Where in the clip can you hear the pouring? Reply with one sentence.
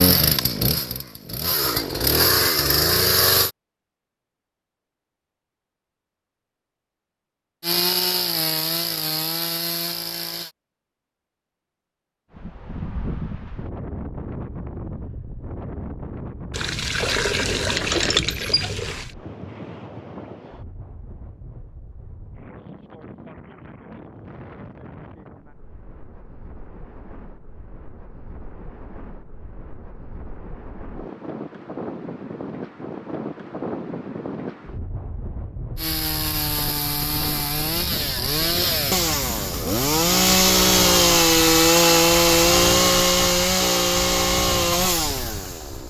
The pouring can be heard from 16.5 to 19.1 s.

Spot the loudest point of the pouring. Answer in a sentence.
The loudest moment of the pouring is at 18 seconds.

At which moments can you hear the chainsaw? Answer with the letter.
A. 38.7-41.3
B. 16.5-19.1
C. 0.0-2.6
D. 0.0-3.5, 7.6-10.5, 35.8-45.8
D.